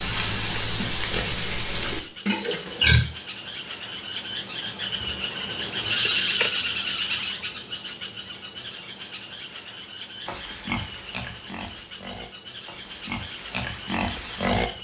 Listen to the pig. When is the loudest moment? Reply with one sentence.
The volume of the pig peaks at 3 seconds.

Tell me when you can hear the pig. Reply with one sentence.
The pig can be heard from 0.0 to 3.0 s and from 10.2 to 14.7 s.